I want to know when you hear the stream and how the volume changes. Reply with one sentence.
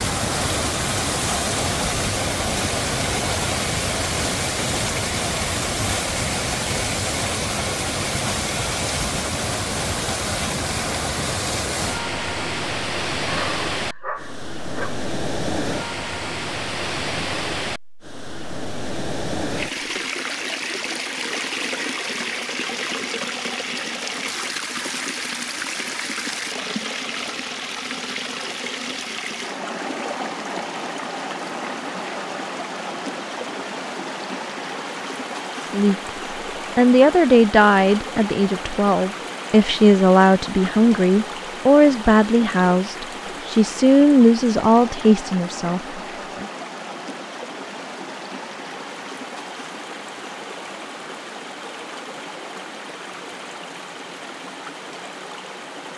The stream can be heard from 0.0 to 55.9 s, getting quieter.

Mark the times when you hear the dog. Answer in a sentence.
You can hear the dog from 13.2 to 15.1 s.